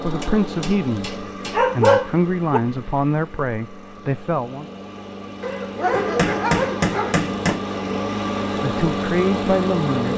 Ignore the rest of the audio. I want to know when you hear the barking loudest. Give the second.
2 s.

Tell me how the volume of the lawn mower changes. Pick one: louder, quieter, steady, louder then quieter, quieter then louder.
quieter then louder.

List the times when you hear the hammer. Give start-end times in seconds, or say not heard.
0.2-2.0, 5.9-7.6.